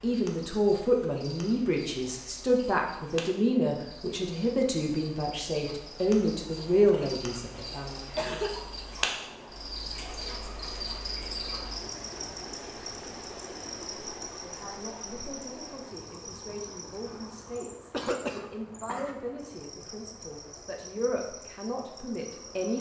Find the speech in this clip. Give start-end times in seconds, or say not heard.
0.0-8.0, 14.4-22.7.